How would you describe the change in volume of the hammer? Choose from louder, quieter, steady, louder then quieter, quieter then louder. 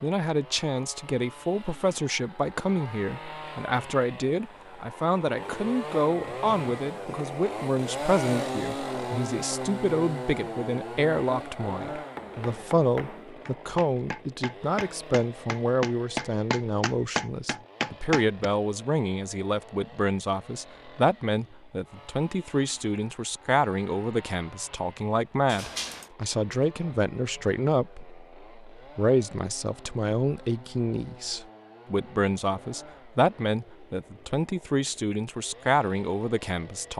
louder.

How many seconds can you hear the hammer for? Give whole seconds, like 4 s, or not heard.
6 s.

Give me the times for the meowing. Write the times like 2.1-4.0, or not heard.
25.4-26.1.